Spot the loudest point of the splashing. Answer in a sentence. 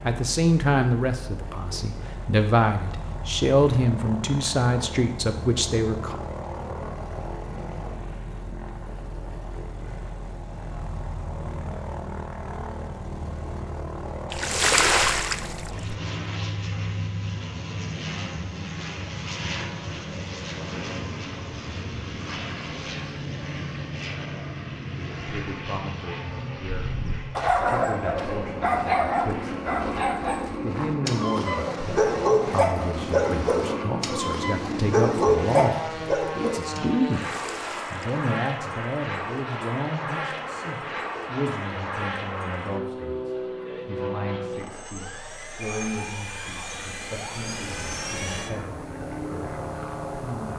The loudest moment of the splashing is at 15 seconds.